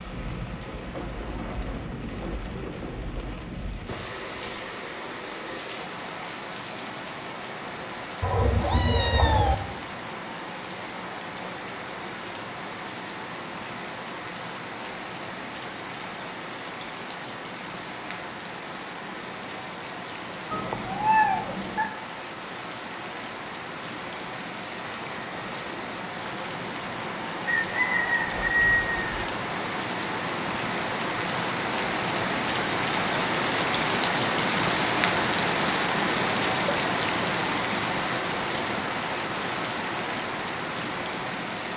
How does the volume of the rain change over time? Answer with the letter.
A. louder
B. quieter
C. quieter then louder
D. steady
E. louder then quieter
A.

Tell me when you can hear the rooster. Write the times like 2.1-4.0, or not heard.
27.4-29.2.